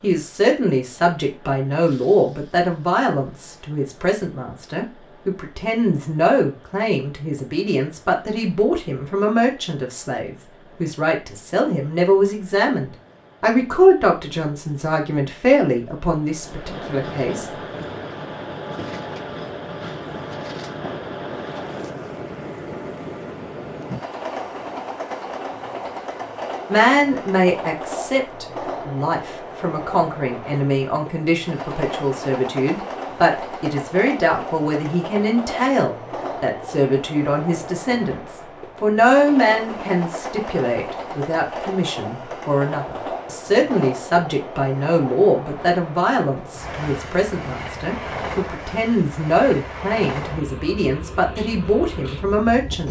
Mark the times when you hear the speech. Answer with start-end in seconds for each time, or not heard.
0.0-17.4, 26.7-52.8.